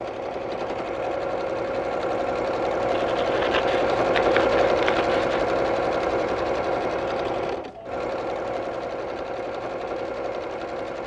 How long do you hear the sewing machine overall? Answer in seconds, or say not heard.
11 s.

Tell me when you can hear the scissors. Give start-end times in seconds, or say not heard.
3.1-5.4.